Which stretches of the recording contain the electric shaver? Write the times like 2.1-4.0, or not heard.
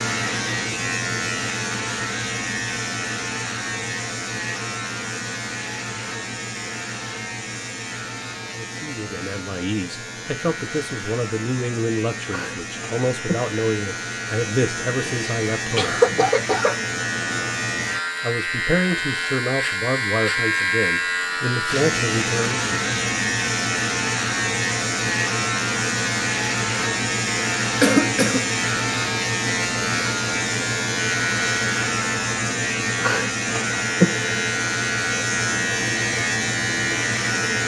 0.0-37.6.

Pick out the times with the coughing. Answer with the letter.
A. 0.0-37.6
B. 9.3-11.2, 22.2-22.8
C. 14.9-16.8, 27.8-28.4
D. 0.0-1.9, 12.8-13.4
C.